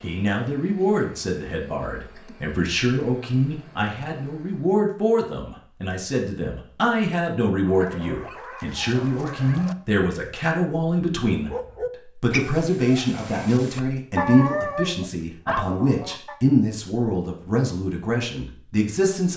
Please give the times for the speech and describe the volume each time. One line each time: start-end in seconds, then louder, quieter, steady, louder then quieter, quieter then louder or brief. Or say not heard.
0.0-19.3 steady.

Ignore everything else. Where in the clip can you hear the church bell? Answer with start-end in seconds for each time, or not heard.
not heard.